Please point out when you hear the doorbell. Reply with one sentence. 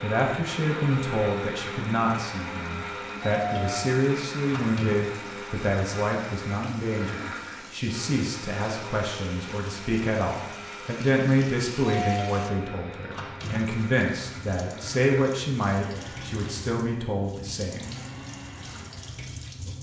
The doorbell can be heard from 3.2 to 5.0 s and from 11.8 to 13.6 s.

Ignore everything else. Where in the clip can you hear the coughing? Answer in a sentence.
You can't hear the coughing here.